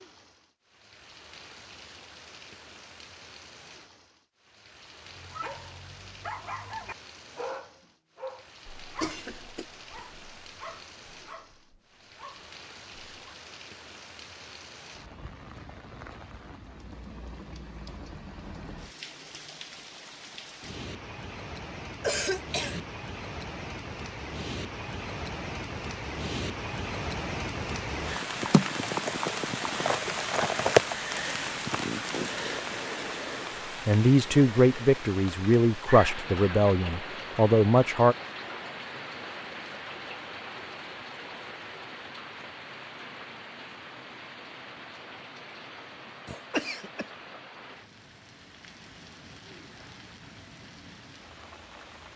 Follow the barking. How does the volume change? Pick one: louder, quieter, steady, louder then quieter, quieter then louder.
quieter.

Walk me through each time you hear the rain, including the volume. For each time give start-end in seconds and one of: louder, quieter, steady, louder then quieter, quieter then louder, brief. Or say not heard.
0.0-52.1 louder then quieter.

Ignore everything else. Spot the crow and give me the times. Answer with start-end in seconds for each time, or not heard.
not heard.